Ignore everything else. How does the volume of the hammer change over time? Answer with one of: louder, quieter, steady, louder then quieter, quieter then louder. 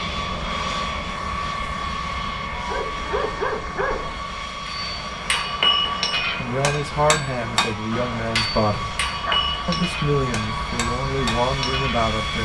quieter.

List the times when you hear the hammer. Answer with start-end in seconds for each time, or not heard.
4.7-12.1.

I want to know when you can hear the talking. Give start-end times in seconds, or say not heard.
6.3-8.9, 9.7-12.4.